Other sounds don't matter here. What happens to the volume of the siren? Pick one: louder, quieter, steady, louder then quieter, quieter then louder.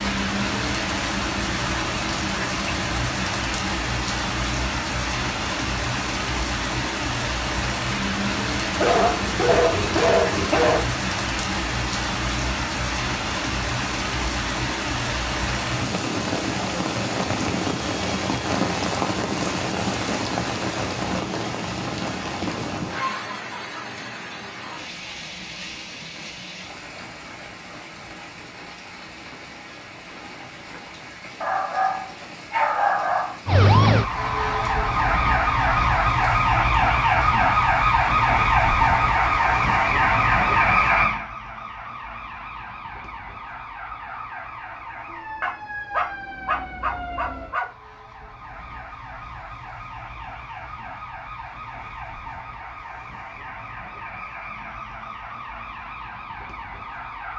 quieter.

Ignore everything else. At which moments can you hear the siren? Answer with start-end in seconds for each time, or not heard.
33.5-57.3.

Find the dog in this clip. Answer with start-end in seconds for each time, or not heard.
8.8-10.8, 31.4-33.4, 45.1-47.6.